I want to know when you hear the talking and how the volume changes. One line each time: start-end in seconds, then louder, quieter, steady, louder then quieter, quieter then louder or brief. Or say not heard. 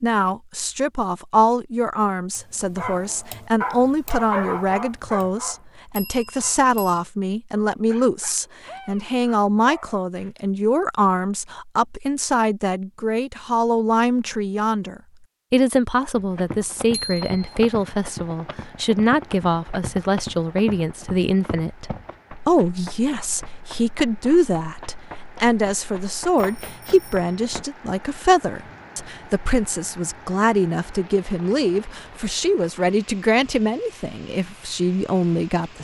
0.0-35.7 steady.